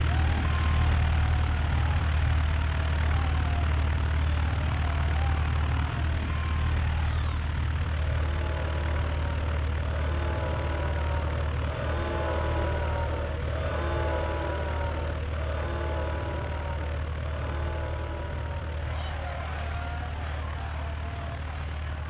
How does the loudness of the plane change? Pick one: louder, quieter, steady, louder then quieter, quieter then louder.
quieter.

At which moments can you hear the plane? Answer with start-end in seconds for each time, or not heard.
0.0-22.0.